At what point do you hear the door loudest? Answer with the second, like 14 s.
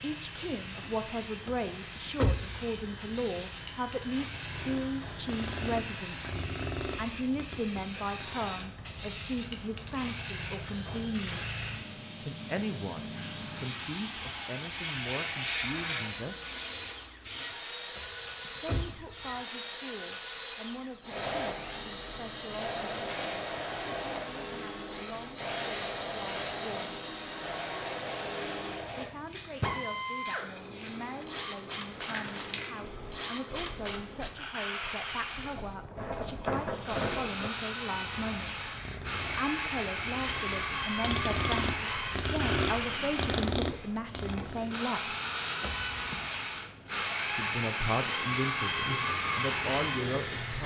2 s.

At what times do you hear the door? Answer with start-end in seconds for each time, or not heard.
1.4-2.6, 17.9-19.4, 45.6-46.3.